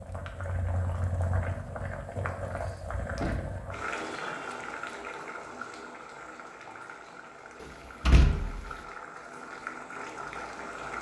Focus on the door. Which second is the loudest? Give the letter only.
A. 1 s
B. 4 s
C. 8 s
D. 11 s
C.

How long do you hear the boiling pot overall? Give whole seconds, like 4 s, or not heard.
11 s.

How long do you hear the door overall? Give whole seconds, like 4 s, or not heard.
2 s.